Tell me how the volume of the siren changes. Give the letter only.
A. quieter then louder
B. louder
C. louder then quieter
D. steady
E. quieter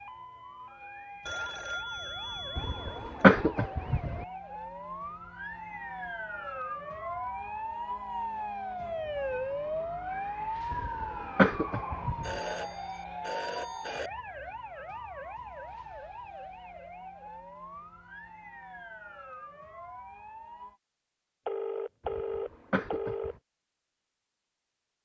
C.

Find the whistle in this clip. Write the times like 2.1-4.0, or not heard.
not heard.